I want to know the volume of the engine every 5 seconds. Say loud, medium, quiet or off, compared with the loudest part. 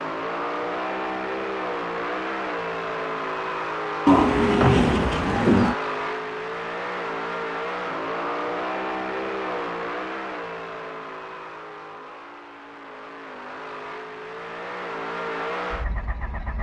loud, loud, medium, loud.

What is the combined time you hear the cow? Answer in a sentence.
You can hear the cow for 2 seconds altogether.